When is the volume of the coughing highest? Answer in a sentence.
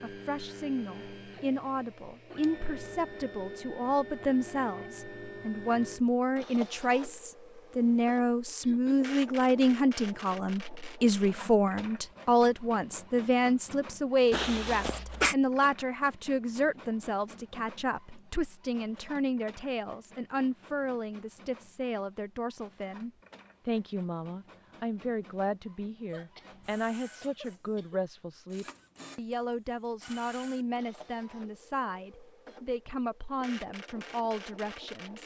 The volume of the coughing peaks at 15 seconds.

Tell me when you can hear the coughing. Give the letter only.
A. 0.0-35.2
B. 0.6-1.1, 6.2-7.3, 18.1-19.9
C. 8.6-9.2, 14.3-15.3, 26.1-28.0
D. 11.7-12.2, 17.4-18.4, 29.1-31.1
C.